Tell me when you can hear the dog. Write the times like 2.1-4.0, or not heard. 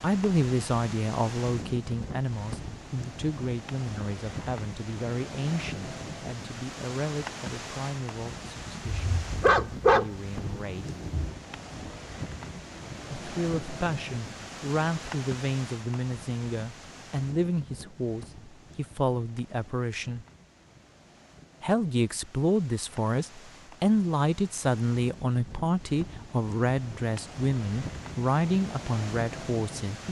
8.8-11.3.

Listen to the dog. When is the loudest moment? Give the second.
10 s.